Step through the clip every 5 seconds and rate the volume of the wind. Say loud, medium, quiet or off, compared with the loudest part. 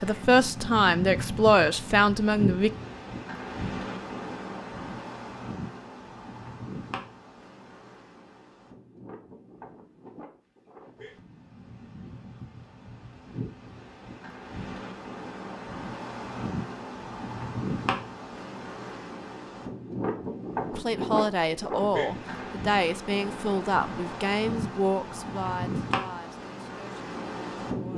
loud, medium, medium, loud, loud, loud.